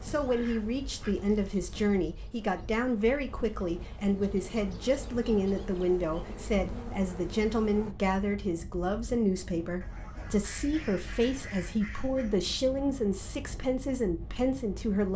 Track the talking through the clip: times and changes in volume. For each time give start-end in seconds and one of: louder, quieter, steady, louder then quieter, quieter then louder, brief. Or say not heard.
0.0-15.1 steady.